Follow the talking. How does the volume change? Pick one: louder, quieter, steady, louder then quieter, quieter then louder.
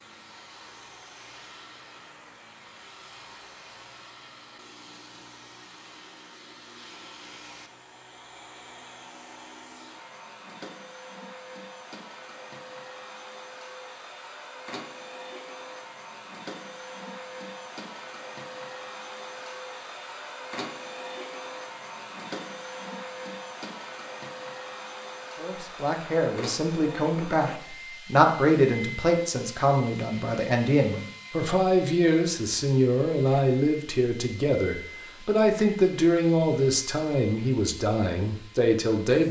steady.